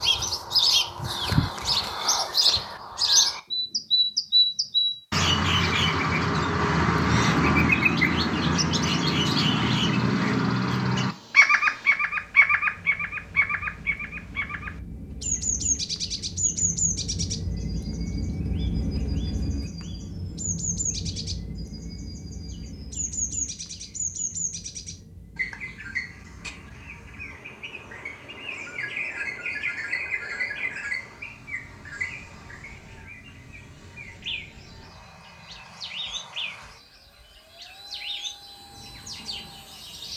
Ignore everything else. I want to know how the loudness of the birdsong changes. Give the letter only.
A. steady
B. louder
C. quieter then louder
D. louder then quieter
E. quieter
E.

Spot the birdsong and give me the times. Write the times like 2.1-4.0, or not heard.
0.0-40.1.